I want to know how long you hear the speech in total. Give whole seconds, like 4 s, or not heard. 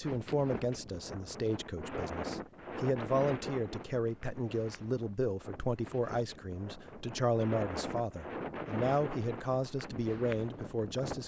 11 s.